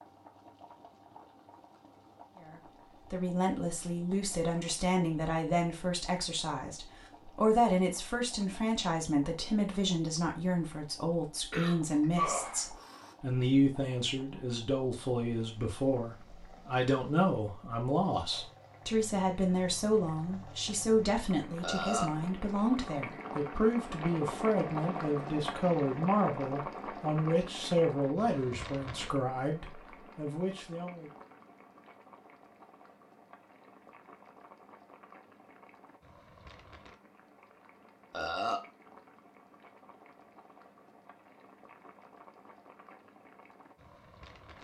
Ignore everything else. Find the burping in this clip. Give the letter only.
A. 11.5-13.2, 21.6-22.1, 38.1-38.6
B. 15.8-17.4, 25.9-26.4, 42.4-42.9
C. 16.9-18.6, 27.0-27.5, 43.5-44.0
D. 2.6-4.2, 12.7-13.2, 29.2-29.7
A.